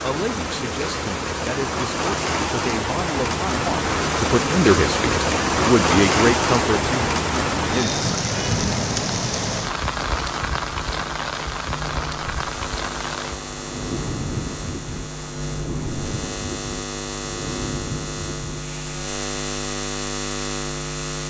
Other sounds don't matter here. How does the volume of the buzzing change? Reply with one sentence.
The volume of the buzzing goes up.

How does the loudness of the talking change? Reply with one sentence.
The loudness of the talking goes up.